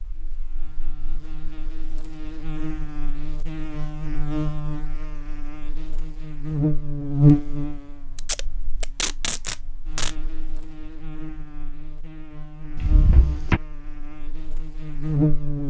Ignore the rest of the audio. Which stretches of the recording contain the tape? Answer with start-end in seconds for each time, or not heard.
8.2-10.2.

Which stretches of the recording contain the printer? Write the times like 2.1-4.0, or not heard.
not heard.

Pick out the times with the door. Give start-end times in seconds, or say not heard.
12.8-13.6.